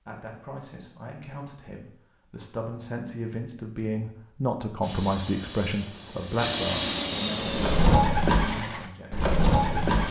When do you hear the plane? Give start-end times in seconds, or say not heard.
4.8-7.8.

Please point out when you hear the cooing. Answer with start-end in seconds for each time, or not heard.
7.5-10.0.